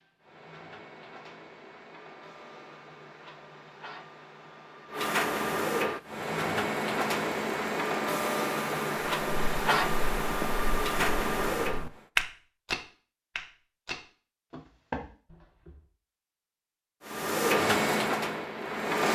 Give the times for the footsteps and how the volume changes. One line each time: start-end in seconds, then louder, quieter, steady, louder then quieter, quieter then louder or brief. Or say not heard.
9.1-15.8 louder then quieter.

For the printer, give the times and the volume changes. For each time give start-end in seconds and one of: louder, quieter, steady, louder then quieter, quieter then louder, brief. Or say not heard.
0.0-12.0 louder
17.1-19.1 brief.